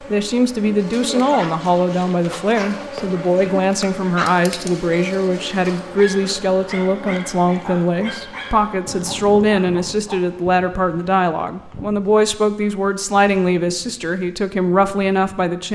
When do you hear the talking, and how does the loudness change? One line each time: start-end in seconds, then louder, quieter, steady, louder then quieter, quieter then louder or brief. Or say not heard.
0.1-15.7 steady.